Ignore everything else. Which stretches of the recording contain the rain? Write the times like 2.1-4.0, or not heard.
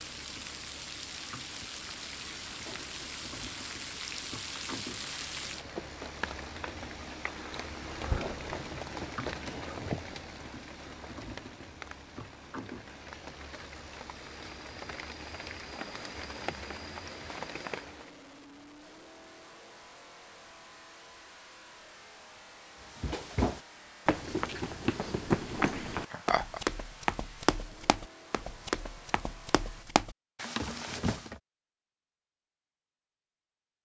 0.0-18.1.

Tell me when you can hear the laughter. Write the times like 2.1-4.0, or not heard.
25.6-26.6.